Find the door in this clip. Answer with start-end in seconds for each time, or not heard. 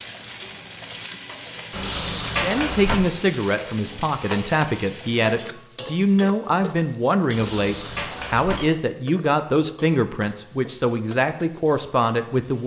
1.7-3.0, 7.3-8.6.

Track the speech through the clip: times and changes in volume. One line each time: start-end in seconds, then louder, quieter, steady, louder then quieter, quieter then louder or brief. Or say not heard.
2.4-12.6 steady.